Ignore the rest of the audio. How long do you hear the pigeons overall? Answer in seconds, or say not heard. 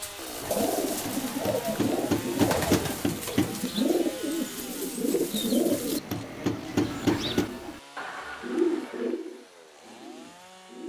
11 s.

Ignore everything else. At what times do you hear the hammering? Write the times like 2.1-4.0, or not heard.
1.1-3.6, 5.7-7.5.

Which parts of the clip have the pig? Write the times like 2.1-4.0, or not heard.
not heard.